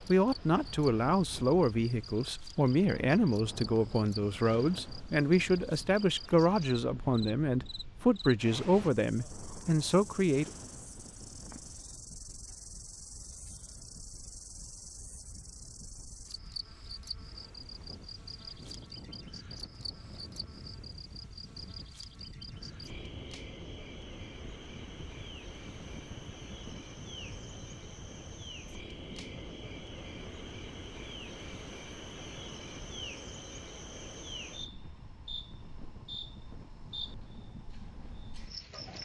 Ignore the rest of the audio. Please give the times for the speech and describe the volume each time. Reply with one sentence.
The speech can be heard from 0.1 to 10.5 s, at a steady volume.